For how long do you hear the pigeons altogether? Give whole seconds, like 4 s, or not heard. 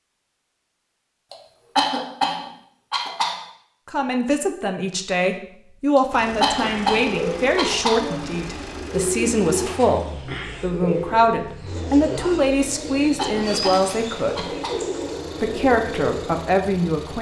10 s.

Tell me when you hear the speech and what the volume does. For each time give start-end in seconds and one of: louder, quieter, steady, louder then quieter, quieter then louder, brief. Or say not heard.
3.9-14.5 steady
15.4-17.1 brief.